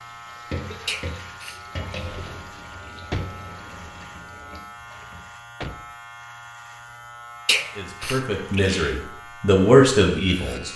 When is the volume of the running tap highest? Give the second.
1 s.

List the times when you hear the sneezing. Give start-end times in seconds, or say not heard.
0.8-2.2, 7.5-8.9.